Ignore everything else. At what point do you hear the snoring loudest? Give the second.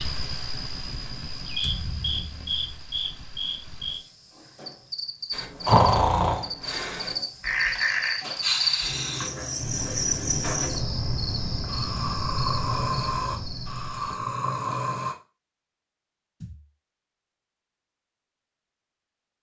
6 s.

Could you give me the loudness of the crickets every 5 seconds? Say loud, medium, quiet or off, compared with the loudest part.
loud, loud, loud, off.